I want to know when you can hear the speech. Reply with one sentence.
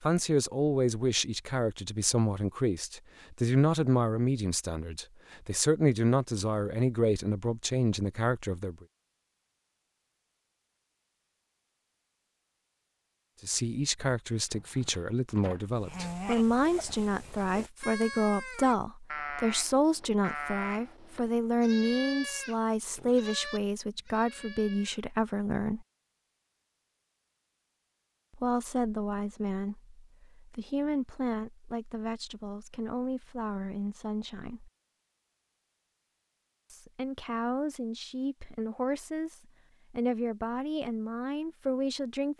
You can hear the speech from 0.0 to 8.8 s, from 13.4 to 25.9 s, from 28.4 to 34.7 s and from 36.7 to 42.3 s.